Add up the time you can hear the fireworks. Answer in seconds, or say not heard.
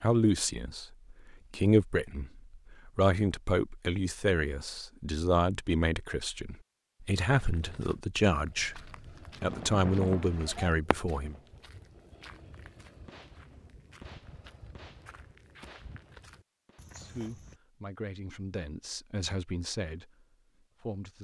6 s.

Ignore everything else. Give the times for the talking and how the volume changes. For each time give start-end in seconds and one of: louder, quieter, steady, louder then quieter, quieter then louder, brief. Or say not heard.
0.0-11.3 steady
16.9-21.1 louder then quieter.